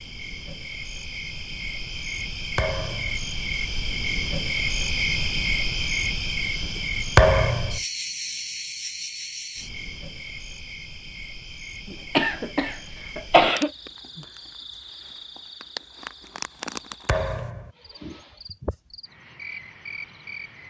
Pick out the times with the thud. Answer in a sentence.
You can hear the thud from 2.5 to 3.2 s, from 7.2 to 7.8 s and from 17.1 to 17.7 s.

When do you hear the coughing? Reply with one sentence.
You can hear the coughing from 11.8 to 13.7 s.